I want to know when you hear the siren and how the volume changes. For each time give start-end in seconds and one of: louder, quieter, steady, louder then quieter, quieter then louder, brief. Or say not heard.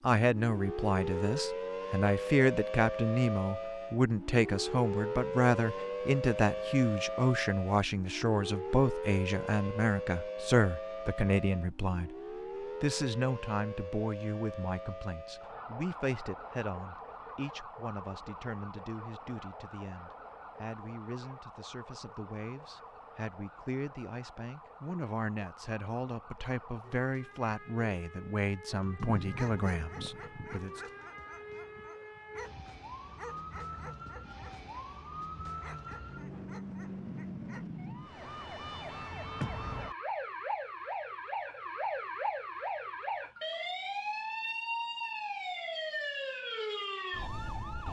0.1-47.8 quieter then louder.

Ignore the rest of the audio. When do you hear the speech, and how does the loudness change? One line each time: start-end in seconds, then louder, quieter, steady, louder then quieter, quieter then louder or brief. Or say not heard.
0.0-30.8 quieter then louder.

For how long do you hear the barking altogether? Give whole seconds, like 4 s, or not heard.
9 s.